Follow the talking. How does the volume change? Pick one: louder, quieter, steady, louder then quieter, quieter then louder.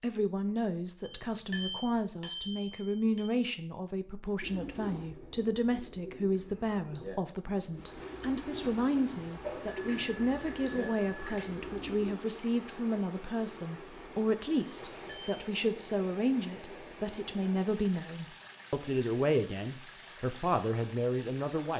steady.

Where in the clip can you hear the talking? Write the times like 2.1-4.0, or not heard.
0.0-21.7.